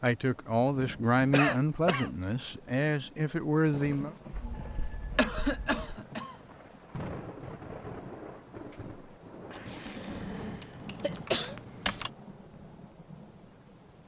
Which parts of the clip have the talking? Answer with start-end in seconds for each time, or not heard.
0.0-4.2.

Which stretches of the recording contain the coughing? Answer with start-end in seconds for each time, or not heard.
1.3-2.1, 5.2-6.3, 9.7-11.6.